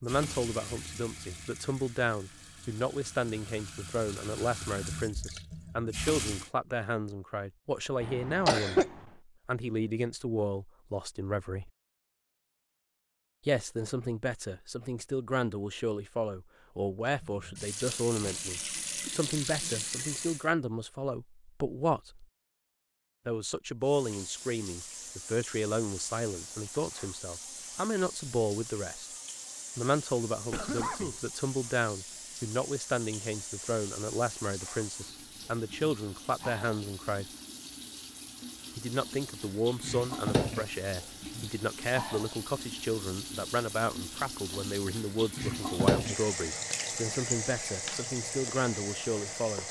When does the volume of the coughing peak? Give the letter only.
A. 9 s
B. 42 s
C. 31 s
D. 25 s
A.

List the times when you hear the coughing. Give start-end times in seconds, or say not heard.
8.0-9.1, 30.5-31.2.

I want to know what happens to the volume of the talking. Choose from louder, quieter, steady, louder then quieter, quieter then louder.
steady.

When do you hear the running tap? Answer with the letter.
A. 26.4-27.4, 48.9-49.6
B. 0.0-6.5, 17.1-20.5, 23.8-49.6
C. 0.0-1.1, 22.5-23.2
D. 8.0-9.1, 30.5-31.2
B.